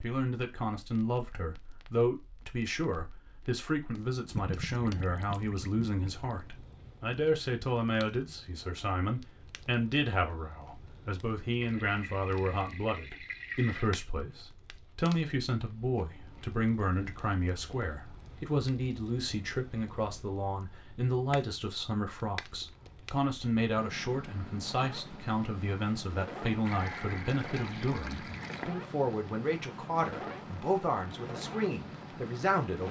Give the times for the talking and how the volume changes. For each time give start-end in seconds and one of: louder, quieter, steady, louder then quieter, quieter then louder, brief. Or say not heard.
0.0-32.8 steady.